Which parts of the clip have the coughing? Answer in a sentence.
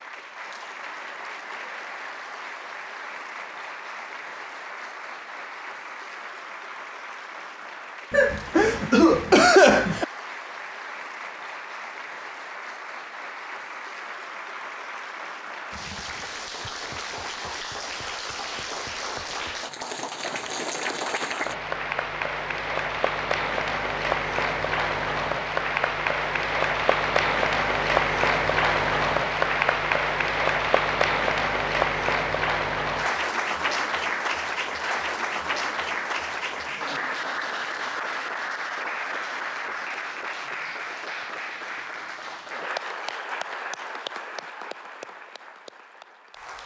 You can hear the coughing from 8.1 to 10.1 s.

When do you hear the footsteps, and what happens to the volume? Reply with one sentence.
The footsteps can't be heard in this clip.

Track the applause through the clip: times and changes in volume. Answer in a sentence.
You can hear the applause from 0.0 to 46.6 s, getting louder then quieter.